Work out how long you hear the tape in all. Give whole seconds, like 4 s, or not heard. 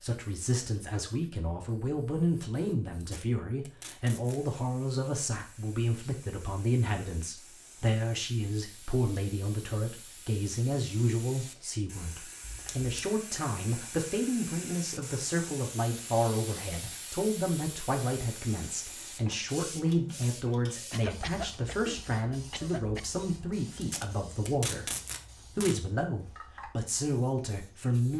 4 s.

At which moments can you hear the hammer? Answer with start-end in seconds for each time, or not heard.
not heard.